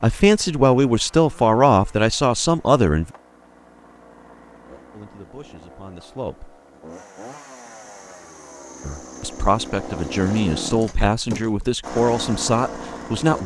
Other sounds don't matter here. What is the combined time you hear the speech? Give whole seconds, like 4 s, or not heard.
9 s.